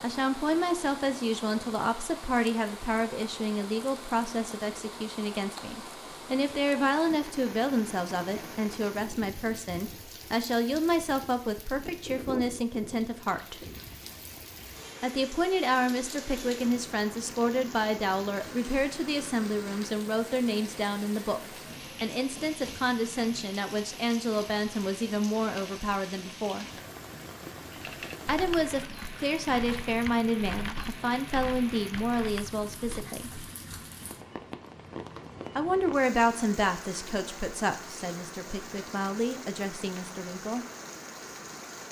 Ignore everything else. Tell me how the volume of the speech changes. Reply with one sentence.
The loudness of the speech stays about the same.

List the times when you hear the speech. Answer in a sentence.
The speech can be heard from 0.0 to 13.6 s, from 15.0 to 21.4 s, from 22.0 to 26.6 s, from 28.2 to 33.3 s and from 35.5 to 40.6 s.